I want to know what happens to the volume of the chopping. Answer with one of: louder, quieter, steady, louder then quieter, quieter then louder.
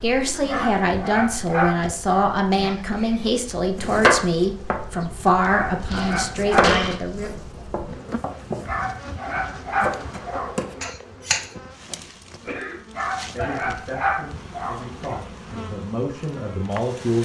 quieter then louder.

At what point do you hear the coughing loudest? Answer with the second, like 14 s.
7 s.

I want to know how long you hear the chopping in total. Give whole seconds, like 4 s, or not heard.
8 s.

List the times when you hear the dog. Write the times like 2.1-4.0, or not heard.
0.5-2.8, 5.5-6.8, 8.7-10.9, 12.9-15.2.